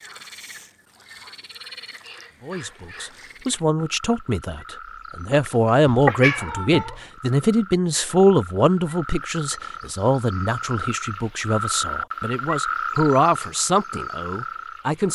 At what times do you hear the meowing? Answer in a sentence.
You can hear the meowing from 5.5 to 7.0 s.